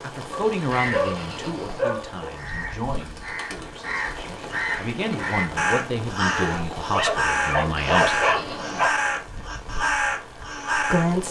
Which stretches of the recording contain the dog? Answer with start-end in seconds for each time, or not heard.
0.3-2.4, 6.5-8.9.